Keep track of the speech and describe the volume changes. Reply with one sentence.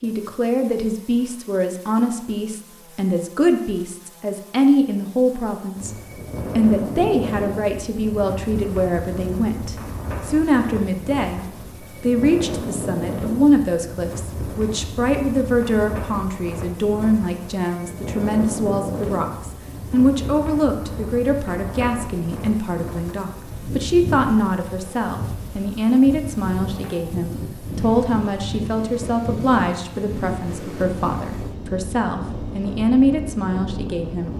The volume of the speech stays about the same.